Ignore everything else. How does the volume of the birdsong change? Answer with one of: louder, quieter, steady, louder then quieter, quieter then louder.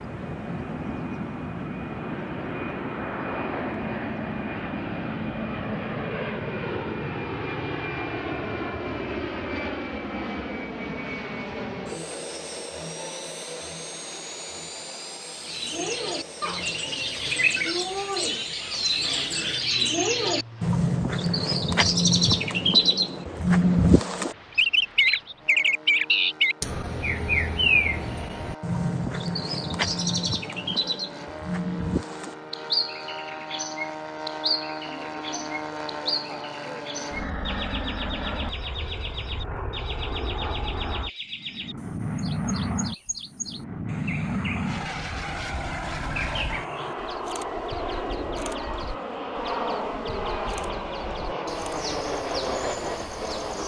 quieter.